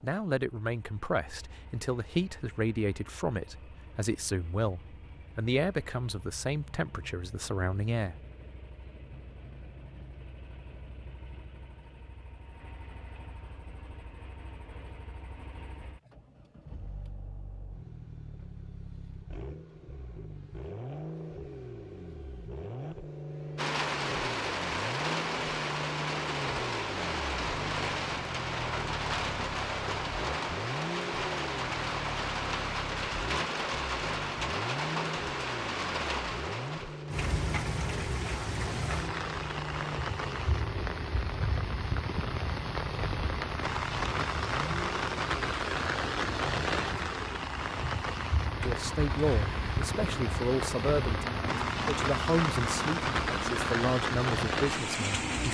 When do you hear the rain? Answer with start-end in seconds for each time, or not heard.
23.6-55.4.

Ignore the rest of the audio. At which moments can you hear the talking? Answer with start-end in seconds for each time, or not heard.
0.0-8.2, 48.6-55.4.